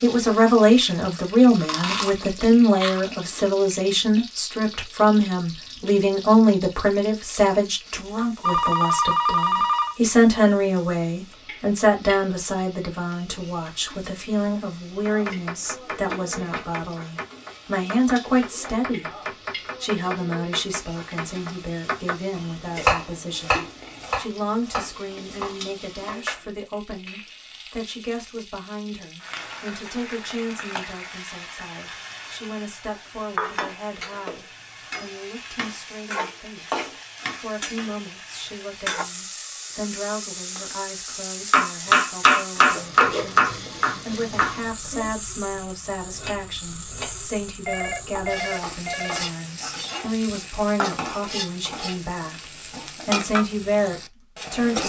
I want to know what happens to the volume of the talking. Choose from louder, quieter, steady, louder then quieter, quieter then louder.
quieter then louder.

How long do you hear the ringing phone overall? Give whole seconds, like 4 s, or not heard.
3 s.